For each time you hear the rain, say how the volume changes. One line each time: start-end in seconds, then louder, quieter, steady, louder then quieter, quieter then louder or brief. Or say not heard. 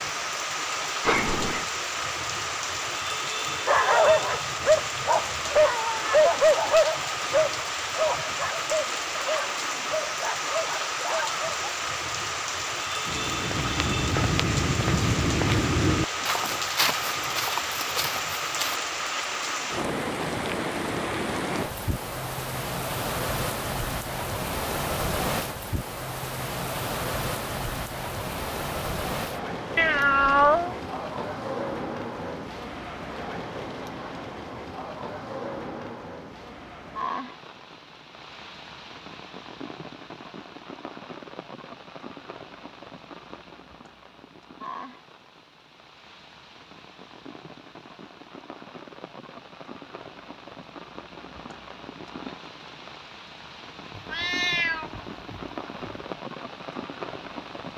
0.0-57.7 quieter.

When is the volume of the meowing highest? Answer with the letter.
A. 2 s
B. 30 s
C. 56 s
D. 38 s
B.